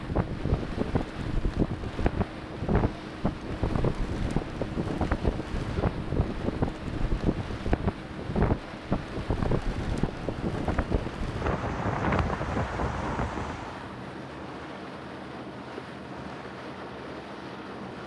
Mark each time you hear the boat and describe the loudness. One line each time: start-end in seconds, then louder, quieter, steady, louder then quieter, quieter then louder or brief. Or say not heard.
0.0-18.0 steady.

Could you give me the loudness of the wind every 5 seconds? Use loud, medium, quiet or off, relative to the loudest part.
loud, loud, loud, off.